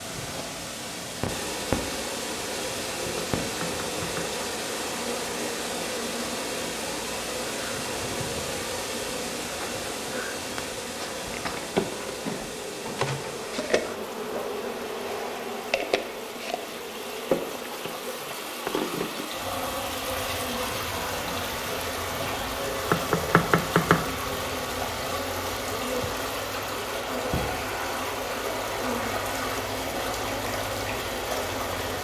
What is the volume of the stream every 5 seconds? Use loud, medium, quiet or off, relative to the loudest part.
loud, loud, medium, medium, loud, loud, loud.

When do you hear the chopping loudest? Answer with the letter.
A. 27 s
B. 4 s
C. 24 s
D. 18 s
C.